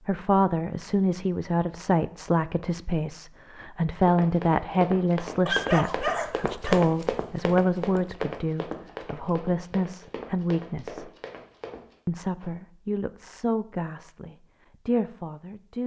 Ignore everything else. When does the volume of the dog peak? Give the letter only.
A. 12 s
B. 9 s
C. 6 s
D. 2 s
C.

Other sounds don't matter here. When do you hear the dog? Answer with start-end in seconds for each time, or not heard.
5.5-6.8.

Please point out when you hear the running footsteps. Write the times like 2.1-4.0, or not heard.
4.0-12.5.